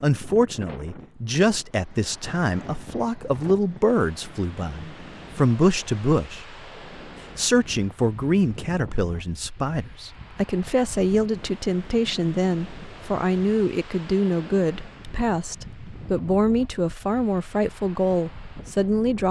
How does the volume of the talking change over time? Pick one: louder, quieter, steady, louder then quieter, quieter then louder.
steady.